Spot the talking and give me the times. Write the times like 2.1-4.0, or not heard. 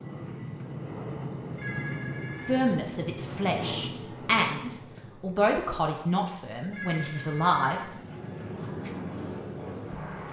2.5-7.9.